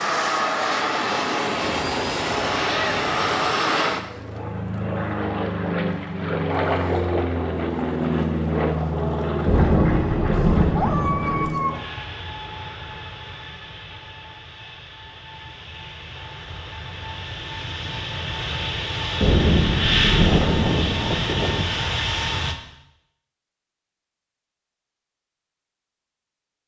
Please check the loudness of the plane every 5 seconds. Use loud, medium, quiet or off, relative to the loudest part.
loud, loud, medium, medium, loud, off.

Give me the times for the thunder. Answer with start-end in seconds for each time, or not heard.
9.4-11.4, 19.2-21.2.